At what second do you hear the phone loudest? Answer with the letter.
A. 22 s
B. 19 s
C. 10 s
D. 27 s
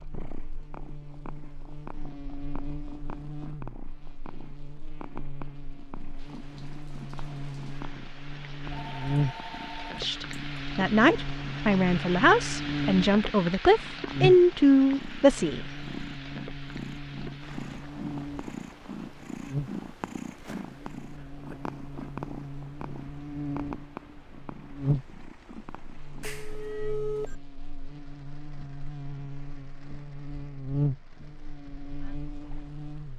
D.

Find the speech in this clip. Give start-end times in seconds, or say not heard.
9.9-15.7.